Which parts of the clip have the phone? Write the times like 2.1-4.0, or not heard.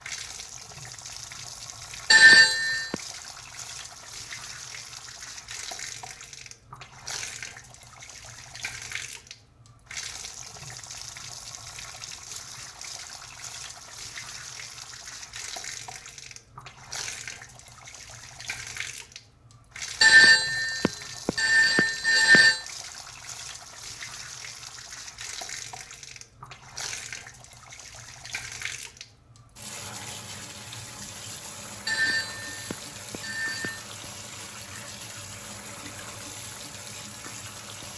2.1-3.0, 20.0-22.6, 31.9-33.9.